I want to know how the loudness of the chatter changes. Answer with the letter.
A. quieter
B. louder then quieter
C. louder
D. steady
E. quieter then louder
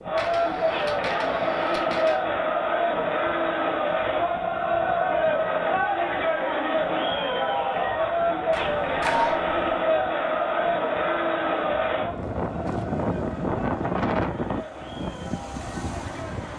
A.